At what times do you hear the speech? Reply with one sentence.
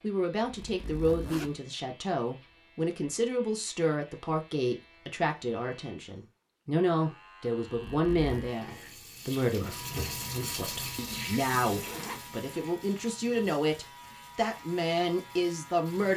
You can hear the speech from 0.0 to 16.1 s.